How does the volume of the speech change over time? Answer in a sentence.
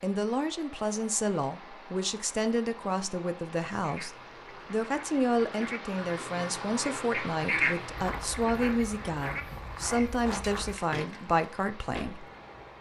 The volume of the speech stays about the same.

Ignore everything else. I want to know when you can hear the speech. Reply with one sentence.
You can hear the speech from 0.0 to 4.1 s and from 4.7 to 12.2 s.